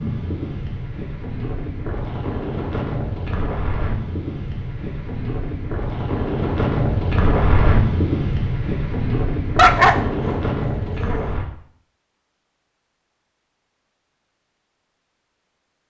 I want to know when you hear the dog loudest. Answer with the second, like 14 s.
10 s.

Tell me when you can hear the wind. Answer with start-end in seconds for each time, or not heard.
0.0-11.4.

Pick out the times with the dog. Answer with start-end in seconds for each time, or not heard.
9.6-11.3.